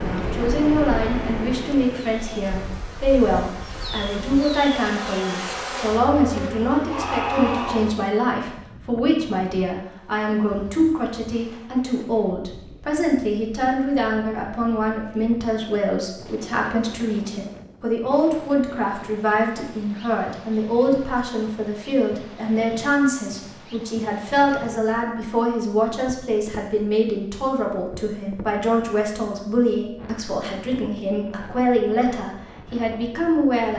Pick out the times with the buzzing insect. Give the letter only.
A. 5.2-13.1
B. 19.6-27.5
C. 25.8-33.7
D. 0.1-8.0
D.